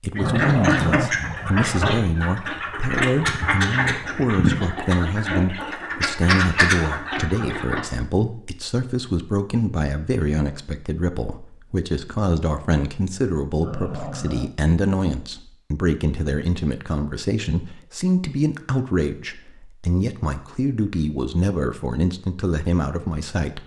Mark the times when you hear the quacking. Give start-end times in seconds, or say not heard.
0.1-7.8.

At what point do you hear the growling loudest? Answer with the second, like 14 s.
1 s.